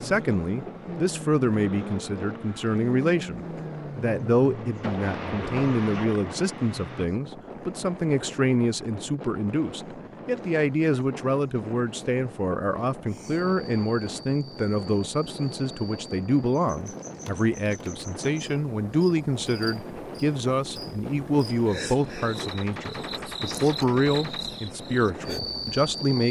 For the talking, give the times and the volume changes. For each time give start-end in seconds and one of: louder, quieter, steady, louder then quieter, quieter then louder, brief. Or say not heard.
0.0-26.2 steady.